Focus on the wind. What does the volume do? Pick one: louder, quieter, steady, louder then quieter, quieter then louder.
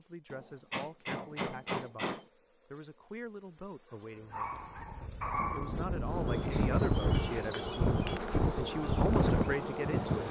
louder.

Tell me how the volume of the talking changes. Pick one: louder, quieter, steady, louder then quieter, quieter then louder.
louder.